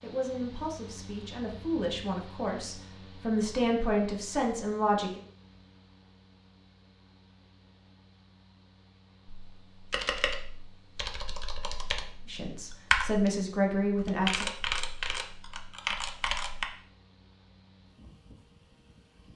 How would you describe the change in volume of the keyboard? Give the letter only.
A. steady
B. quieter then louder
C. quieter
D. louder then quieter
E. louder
D.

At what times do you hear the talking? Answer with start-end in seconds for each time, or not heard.
0.0-5.2, 12.2-14.4.